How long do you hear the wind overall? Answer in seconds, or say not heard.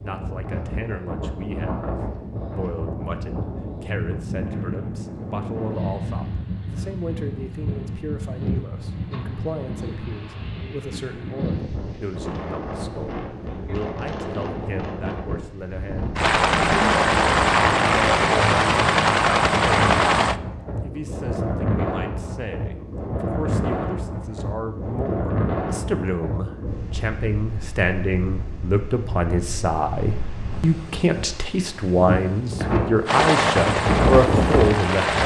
35 s.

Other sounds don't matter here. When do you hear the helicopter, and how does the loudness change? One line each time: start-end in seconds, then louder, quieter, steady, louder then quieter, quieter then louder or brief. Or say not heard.
16.1-20.4 steady
33.0-35.2 brief.